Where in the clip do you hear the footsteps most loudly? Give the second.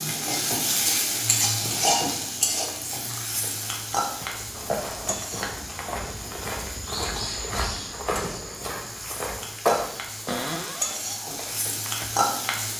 10 s.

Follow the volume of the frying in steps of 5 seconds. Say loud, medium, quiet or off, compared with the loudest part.
loud, medium, loud.